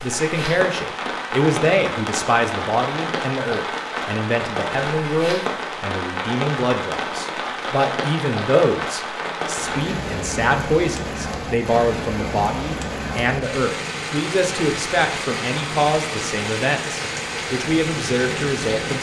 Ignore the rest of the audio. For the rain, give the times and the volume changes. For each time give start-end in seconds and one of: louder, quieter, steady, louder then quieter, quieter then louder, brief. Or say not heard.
0.0-18.9 steady.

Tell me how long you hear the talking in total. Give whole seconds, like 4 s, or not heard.
19 s.